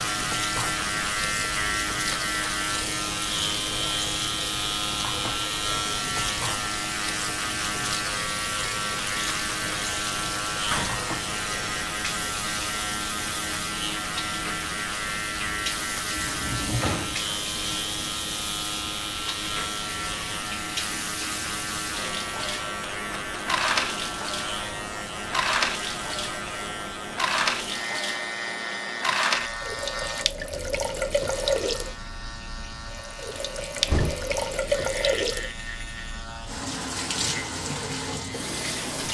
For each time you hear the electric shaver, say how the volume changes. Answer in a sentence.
You can hear the electric shaver from 0.0 to 39.0 s, getting quieter.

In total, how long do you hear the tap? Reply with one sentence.
You can hear the tap for 39 seconds altogether.